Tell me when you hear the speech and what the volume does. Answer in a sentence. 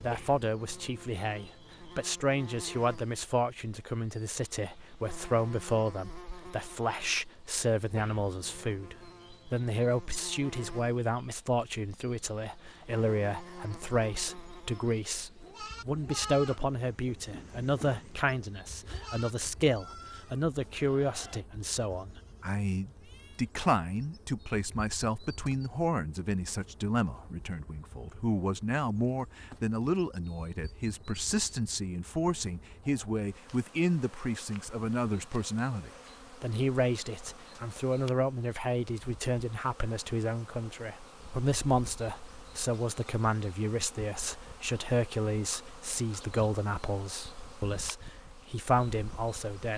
The speech can be heard from 0.0 to 49.7 s, at a steady volume.